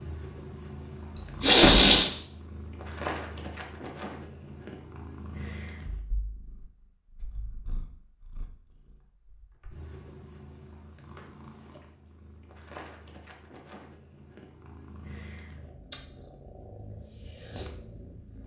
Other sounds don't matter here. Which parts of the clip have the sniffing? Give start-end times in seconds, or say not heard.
1.1-2.1.